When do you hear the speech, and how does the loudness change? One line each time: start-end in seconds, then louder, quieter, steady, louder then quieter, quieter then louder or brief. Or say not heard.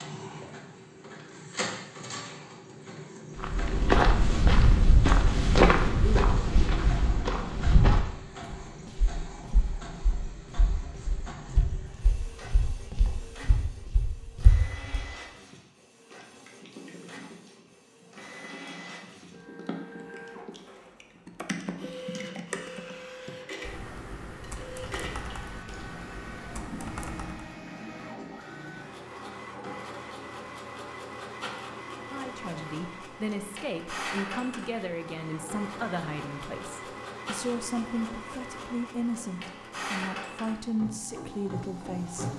32.1-42.3 steady.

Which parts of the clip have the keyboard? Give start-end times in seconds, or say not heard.
15.5-27.6.